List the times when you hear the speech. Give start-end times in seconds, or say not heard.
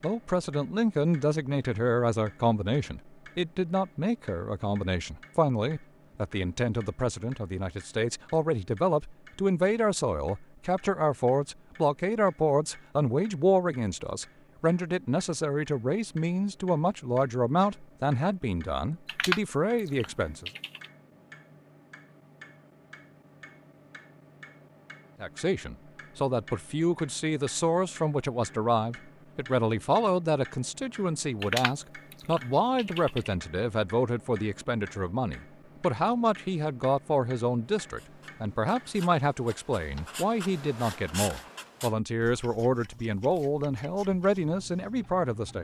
0.0-20.5, 25.2-45.6.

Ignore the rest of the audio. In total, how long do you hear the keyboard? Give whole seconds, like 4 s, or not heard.
4 s.